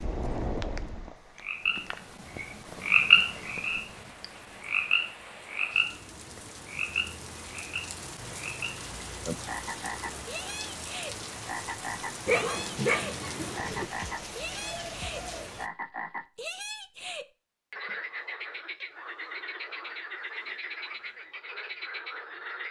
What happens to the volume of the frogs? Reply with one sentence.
The loudness of the frogs goes down.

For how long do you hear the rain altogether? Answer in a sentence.
You can hear the rain for 16 seconds altogether.